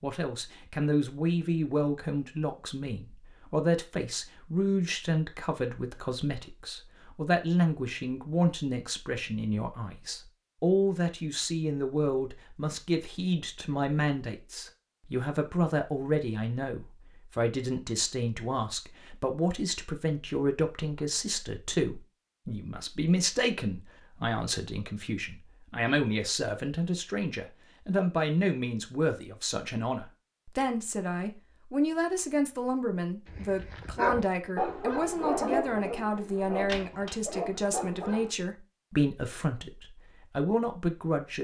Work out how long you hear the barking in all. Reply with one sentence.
The barking can be heard for 5 seconds in total.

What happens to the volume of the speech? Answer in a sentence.
The loudness of the speech stays about the same.